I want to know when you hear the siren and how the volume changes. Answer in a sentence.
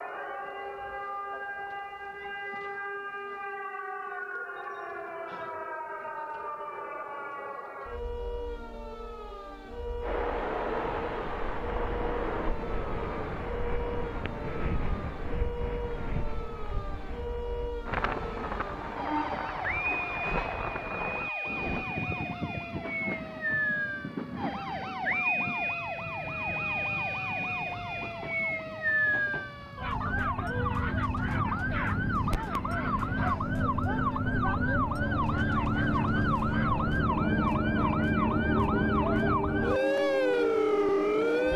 The siren can be heard from 0.0 to 41.5 s, getting louder.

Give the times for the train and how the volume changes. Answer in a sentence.
The train can be heard from 10.0 to 41.5 s, getting quieter then louder.